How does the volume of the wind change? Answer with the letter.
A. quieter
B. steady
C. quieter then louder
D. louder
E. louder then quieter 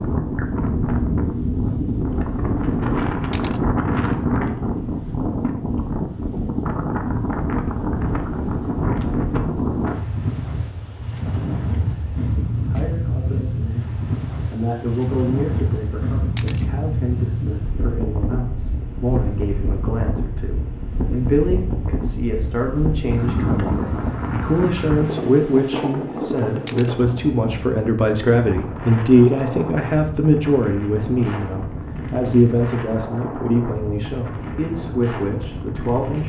A.